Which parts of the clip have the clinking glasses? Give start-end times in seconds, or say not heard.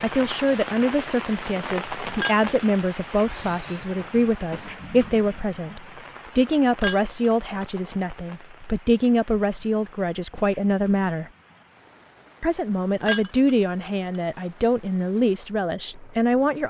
2.1-2.6, 6.8-7.7, 13.1-13.9.